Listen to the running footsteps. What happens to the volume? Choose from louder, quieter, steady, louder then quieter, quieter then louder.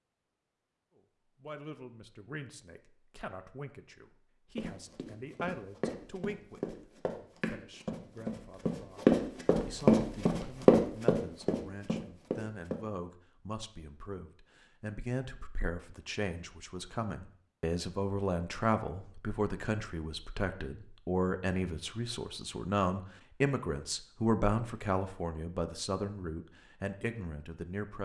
louder then quieter.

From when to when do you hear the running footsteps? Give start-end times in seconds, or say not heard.
4.5-12.8.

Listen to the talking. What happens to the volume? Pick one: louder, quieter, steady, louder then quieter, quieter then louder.
louder.